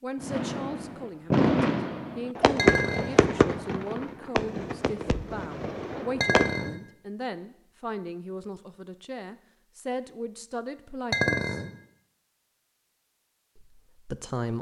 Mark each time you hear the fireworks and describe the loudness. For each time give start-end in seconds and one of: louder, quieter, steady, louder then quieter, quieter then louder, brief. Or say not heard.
0.2-6.6 quieter.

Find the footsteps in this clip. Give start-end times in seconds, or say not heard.
not heard.